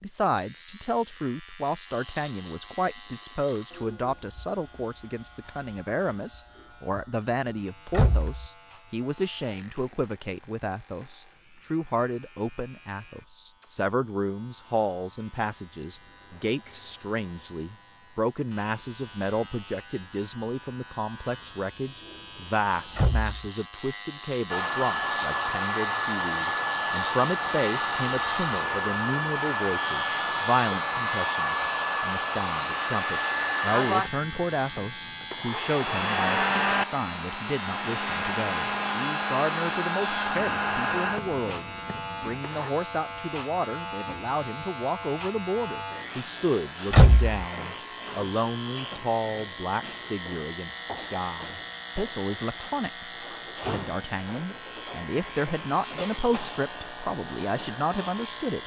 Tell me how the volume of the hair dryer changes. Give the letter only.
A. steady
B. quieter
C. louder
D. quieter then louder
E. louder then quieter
A.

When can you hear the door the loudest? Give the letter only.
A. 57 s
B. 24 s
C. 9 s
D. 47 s
D.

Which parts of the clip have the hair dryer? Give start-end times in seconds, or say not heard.
24.5-42.7.